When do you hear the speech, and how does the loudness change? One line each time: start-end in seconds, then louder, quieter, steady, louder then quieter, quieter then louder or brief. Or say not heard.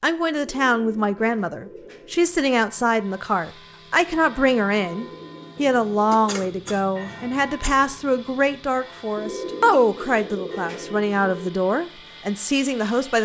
0.0-13.2 steady.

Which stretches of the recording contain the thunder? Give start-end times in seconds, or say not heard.
not heard.